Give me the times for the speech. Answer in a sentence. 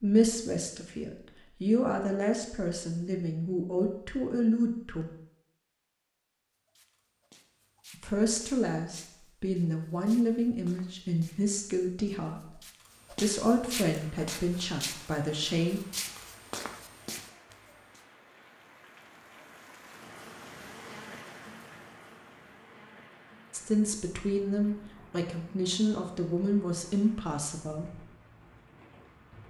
The speech can be heard from 0.0 to 5.0 s, from 8.0 to 15.8 s and from 23.5 to 28.0 s.